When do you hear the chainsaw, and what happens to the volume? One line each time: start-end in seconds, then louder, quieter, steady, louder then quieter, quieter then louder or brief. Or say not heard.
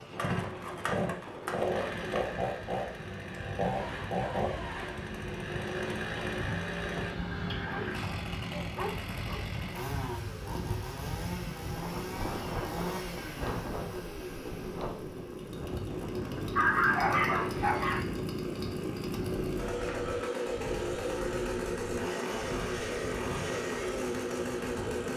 0.0-25.1 quieter then louder.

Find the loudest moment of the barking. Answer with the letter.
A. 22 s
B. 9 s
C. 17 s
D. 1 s
C.